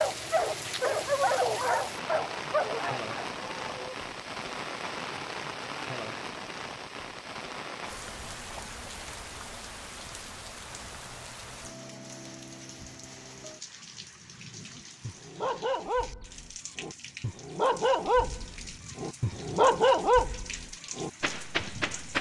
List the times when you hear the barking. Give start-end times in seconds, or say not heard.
0.0-4.0, 14.8-22.1.